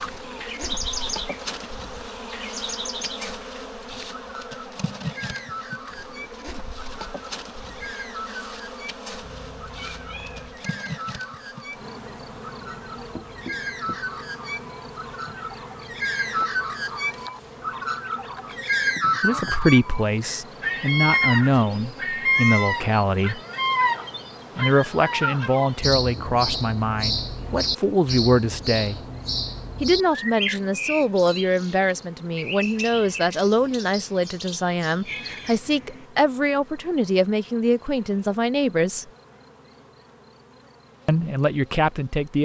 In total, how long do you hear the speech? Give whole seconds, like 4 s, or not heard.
19 s.